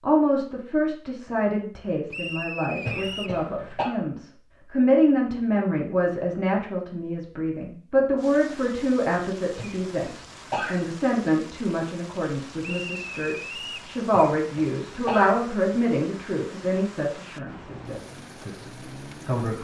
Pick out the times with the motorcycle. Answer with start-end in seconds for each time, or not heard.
17.6-19.6.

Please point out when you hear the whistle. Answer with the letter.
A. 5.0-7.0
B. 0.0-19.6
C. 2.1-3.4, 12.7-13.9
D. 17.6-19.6
C.